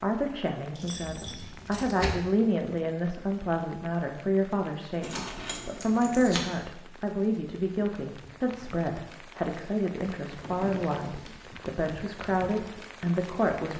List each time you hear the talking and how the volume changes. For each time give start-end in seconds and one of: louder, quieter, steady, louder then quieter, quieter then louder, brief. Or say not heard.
0.0-13.7 steady.